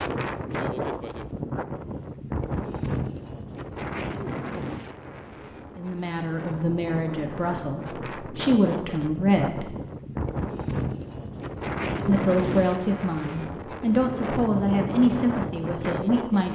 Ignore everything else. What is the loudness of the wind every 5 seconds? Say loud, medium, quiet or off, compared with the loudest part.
loud, medium, loud, loud.